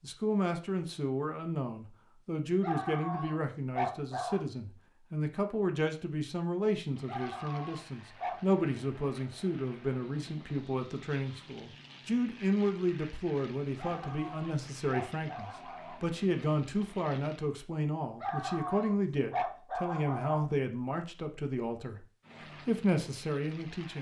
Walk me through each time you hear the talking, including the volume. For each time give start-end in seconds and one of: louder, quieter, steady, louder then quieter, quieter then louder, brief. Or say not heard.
0.0-22.1 steady
22.6-23.9 brief.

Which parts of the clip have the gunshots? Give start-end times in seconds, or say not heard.
not heard.